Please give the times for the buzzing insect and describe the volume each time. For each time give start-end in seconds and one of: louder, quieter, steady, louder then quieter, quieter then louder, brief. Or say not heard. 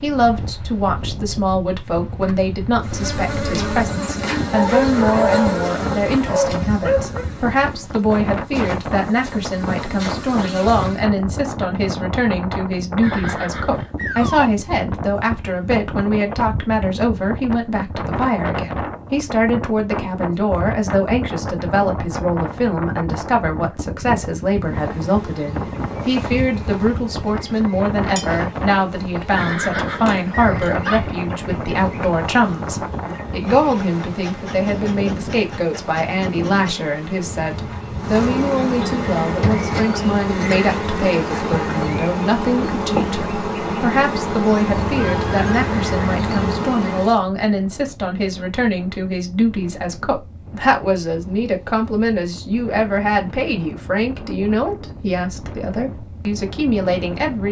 2.8-11.1 quieter then louder
24.5-47.2 louder.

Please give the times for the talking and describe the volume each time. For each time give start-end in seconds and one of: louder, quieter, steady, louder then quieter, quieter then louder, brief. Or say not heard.
0.0-57.4 steady.